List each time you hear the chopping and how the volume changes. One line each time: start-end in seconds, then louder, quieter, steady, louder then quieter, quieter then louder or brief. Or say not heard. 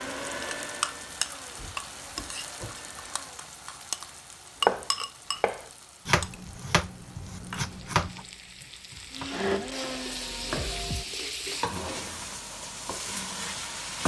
4.6-11.1 quieter then louder.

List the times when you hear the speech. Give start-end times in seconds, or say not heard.
not heard.